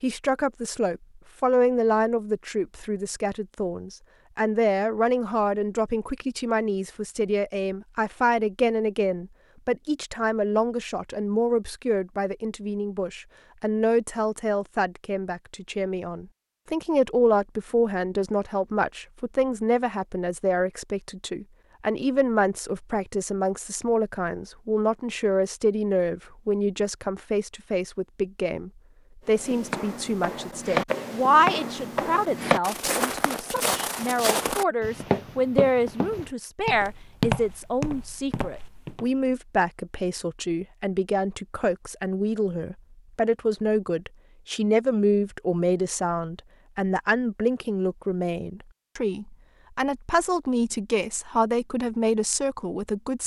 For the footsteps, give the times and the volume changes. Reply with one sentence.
The footsteps can be heard from 29.2 to 39.0 s, at a steady volume.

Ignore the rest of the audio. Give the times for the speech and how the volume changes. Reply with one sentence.
The speech can be heard from 0.0 to 53.2 s, at a steady volume.